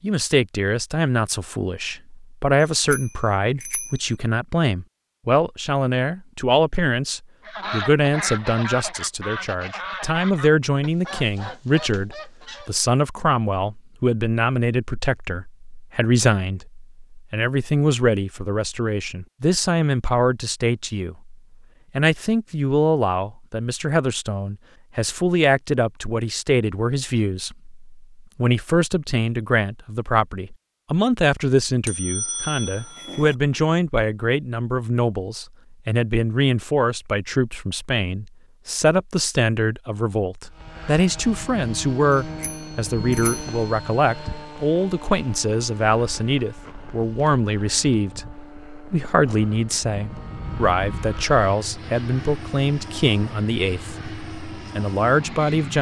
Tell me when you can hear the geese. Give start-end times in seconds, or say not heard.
7.5-12.8.